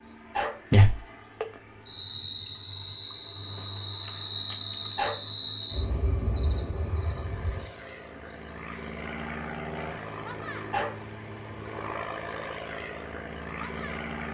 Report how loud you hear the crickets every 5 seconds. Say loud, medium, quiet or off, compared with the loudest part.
loud, medium, quiet.